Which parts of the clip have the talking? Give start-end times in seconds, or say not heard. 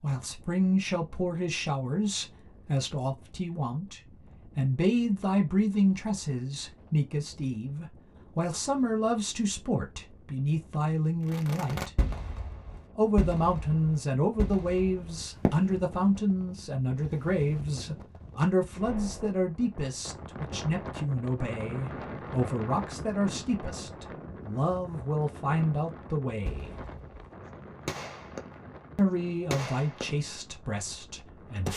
0.0-11.9, 12.9-26.8, 28.9-31.7.